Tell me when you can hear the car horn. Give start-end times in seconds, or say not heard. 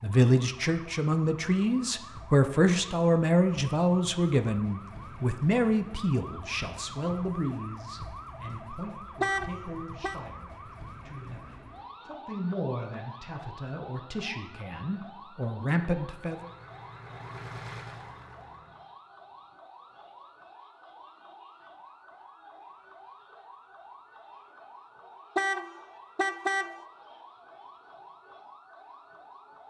9.2-10.2, 25.4-26.8.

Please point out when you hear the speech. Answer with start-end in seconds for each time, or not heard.
0.0-16.5.